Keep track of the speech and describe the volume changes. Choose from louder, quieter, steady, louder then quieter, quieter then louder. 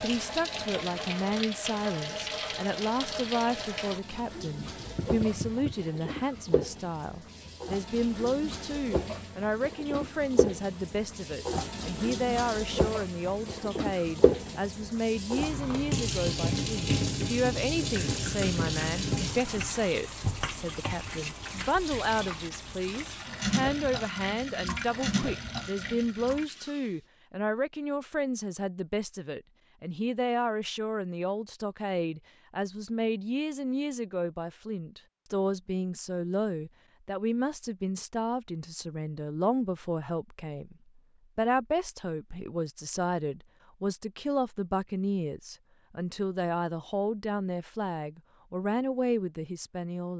steady.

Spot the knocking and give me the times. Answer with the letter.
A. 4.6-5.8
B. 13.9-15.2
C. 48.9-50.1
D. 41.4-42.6
A.